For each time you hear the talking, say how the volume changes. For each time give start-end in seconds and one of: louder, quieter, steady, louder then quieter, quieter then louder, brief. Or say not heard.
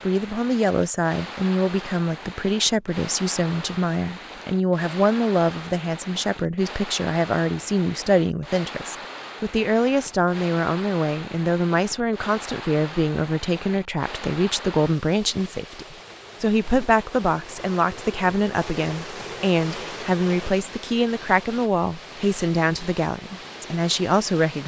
0.0-24.6 steady.